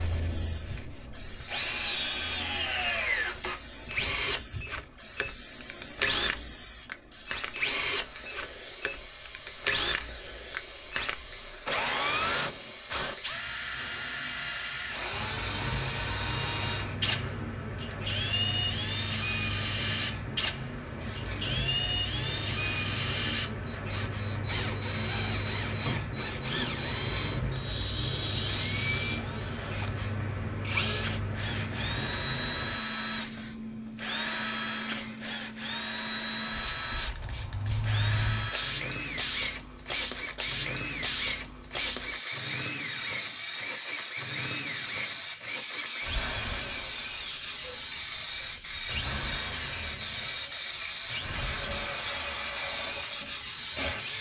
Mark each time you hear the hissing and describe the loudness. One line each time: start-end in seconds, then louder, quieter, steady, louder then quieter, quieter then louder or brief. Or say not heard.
0.0-54.1 louder.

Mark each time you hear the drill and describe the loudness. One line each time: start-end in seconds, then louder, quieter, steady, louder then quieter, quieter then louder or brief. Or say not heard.
0.0-54.1 quieter.